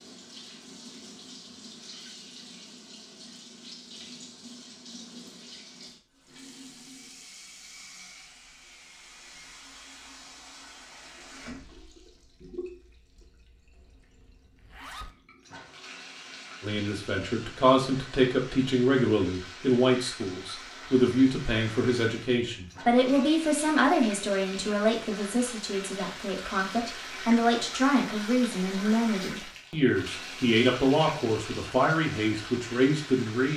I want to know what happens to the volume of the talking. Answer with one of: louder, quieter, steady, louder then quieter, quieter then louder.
steady.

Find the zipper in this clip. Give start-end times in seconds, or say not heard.
14.6-15.2.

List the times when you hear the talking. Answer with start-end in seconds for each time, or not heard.
16.6-33.5.